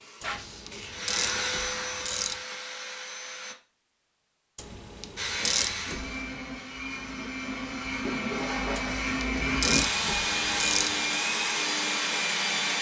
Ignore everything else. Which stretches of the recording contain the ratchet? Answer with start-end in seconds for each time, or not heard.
0.2-2.4, 4.5-6.2, 8.8-10.9.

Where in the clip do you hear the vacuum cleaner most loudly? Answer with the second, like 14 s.
10 s.